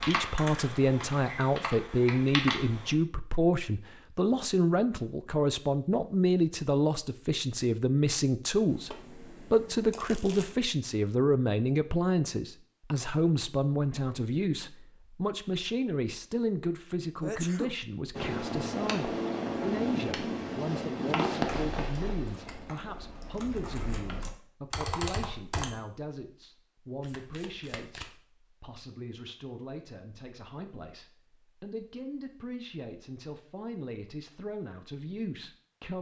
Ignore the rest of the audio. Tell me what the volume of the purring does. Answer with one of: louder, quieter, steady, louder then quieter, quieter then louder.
quieter.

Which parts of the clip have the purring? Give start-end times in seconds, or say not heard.
18.1-24.2.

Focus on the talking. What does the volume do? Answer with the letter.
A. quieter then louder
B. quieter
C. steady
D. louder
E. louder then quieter
B.